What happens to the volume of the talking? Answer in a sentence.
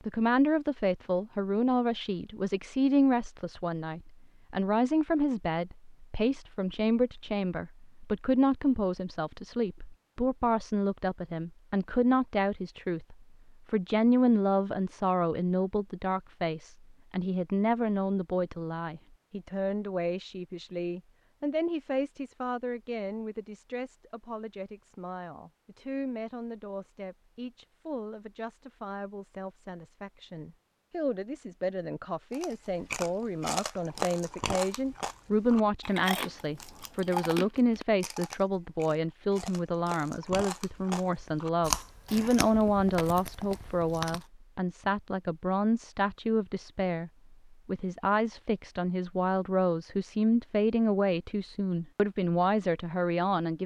The volume of the talking goes down, then up.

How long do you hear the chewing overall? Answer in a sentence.
The chewing can be heard for 12 seconds in total.